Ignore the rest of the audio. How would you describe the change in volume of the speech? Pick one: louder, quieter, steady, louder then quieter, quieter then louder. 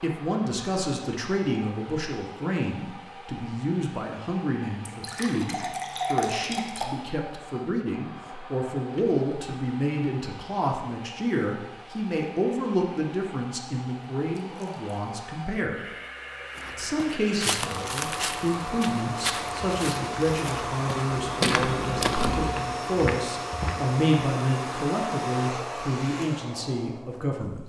steady.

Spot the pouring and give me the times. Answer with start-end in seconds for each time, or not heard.
4.8-6.8, 14.3-14.9, 21.1-22.6.